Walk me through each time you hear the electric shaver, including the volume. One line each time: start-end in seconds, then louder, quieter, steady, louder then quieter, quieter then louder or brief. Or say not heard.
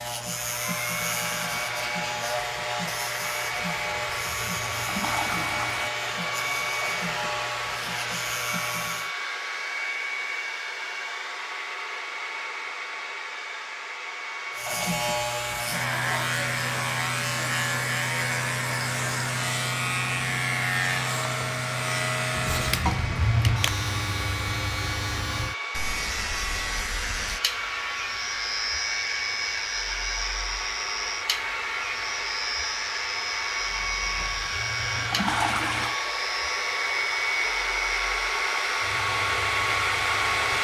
0.0-9.1 steady
14.6-40.5 quieter.